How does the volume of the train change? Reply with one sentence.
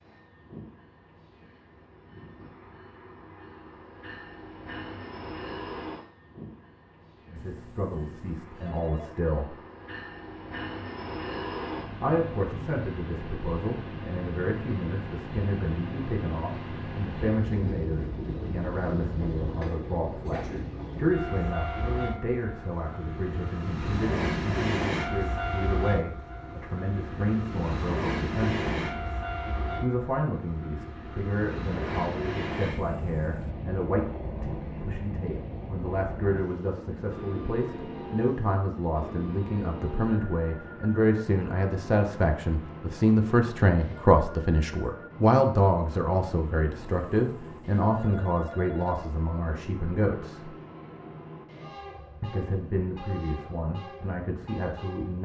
The loudness of the train goes up, then down.